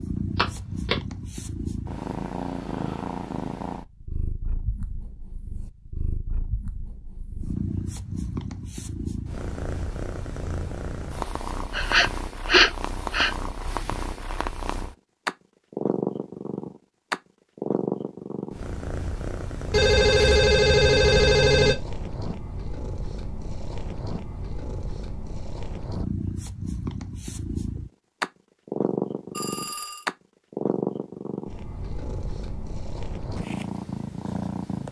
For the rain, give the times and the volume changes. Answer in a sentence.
You can't hear the rain here.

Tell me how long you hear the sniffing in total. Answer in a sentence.
You can hear the sniffing for 2 seconds altogether.